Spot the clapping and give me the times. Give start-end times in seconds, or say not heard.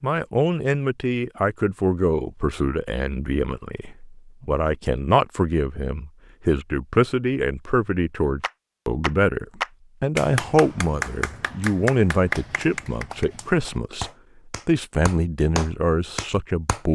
8.4-16.8.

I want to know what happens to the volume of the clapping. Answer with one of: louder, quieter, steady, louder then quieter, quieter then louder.
quieter then louder.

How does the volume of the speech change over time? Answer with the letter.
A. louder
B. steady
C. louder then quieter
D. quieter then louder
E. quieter
B.